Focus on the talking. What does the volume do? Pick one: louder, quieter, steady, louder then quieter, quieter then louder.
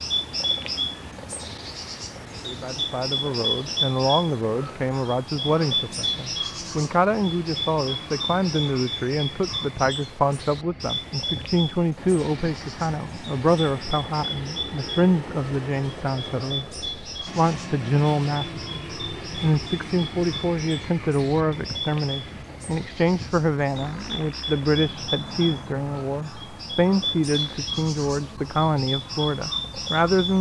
steady.